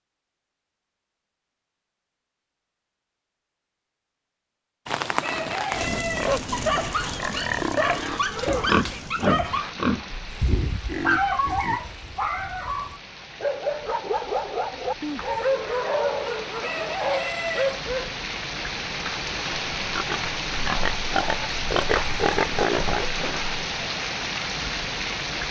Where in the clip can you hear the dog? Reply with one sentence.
The dog can be heard from 6.5 to 18.1 s.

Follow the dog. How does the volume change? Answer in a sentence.
The volume of the dog stays about the same.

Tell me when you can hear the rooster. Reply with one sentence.
The rooster can be heard from 4.8 to 6.4 s and from 16.2 to 17.8 s.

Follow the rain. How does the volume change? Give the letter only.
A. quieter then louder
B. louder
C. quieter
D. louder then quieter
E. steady
A.